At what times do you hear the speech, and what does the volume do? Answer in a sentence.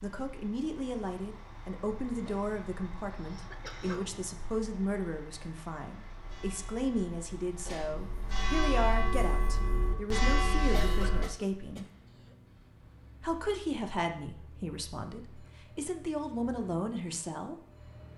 You can hear the speech from 0.0 to 11.8 s, at a steady volume; and from 13.2 to 17.6 s, getting quieter then louder.